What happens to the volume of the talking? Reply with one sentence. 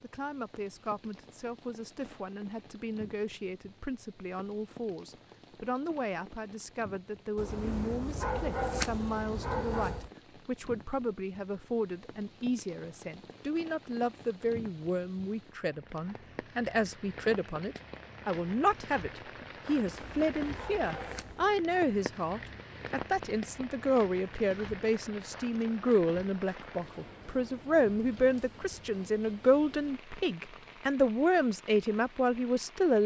The volume of the talking goes up.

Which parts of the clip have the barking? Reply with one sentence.
You can hear the barking from 7.3 to 10.1 s and from 19.7 to 21.6 s.